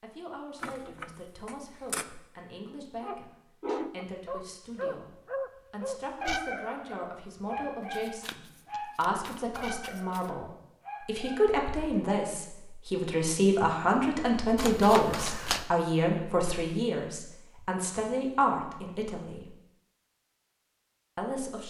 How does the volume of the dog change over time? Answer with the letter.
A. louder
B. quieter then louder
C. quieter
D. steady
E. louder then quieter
C.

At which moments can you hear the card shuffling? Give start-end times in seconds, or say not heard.
0.6-2.0, 7.8-10.3, 14.6-15.7.